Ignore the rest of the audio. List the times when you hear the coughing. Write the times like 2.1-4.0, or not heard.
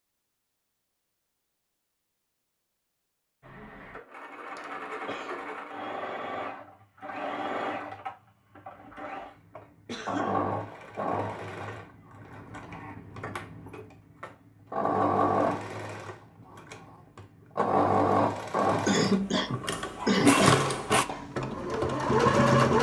4.5-5.4, 9.8-10.4, 18.9-20.6.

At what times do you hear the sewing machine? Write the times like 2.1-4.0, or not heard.
3.4-22.7.